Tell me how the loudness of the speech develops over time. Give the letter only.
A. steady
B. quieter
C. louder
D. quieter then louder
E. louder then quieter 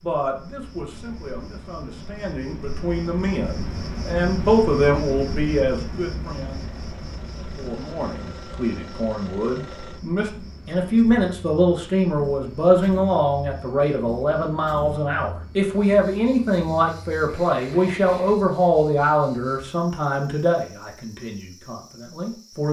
C.